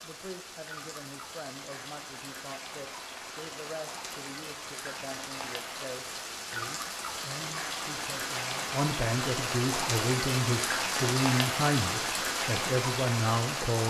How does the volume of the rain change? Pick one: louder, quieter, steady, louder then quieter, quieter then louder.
louder.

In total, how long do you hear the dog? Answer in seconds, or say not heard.
not heard.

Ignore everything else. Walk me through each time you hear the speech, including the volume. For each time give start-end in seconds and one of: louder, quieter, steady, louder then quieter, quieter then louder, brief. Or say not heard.
0.0-13.8 louder.